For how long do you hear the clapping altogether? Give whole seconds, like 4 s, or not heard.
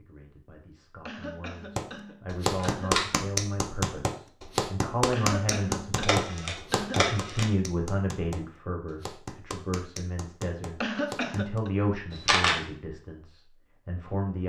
10 s.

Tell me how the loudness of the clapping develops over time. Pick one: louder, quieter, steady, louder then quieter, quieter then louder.
quieter.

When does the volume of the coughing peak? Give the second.
11 s.